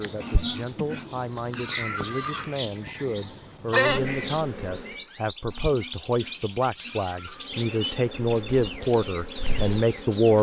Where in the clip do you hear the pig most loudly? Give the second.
2 s.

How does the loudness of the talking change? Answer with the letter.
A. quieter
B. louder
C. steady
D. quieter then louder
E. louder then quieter
B.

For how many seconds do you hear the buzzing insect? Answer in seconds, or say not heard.
8 s.